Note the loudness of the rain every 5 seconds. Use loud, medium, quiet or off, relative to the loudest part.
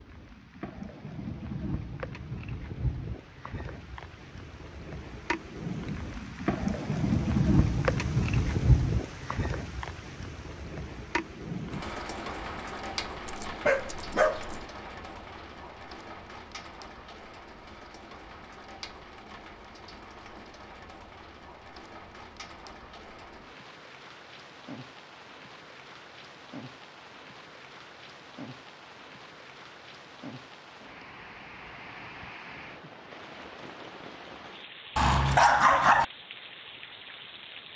medium, loud, medium, quiet, quiet, quiet, quiet, quiet.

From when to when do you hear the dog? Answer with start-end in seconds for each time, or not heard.
13.2-14.7, 35.0-36.0.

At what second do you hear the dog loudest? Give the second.
36 s.